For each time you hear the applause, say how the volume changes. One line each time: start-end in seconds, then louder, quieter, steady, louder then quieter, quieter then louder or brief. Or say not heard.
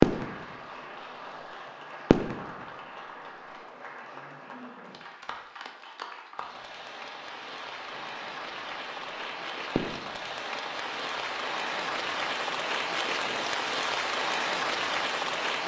0.0-15.6 louder.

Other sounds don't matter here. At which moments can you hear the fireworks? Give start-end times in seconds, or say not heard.
0.0-0.6, 2.1-2.6, 9.8-10.3.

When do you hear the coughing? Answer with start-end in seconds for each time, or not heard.
not heard.